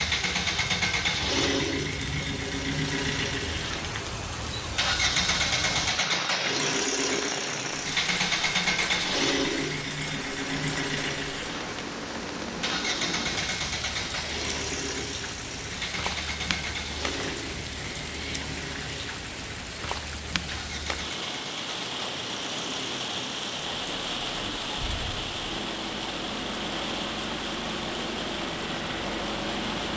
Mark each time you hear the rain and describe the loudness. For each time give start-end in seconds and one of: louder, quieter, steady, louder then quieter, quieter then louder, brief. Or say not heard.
0.0-29.9 steady.